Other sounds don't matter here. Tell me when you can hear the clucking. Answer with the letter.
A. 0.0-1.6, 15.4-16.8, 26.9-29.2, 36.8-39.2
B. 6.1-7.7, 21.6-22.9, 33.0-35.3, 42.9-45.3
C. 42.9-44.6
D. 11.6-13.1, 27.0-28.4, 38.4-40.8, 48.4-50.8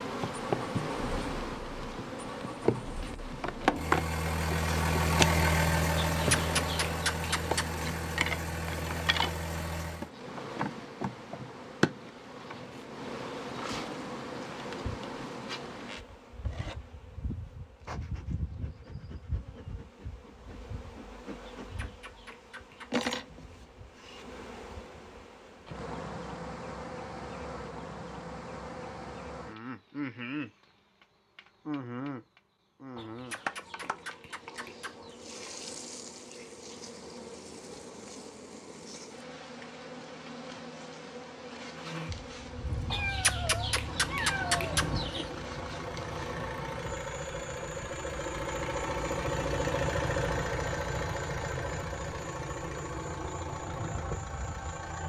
B.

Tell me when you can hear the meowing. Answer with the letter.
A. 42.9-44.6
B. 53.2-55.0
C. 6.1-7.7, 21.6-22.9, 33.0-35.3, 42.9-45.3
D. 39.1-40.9
A.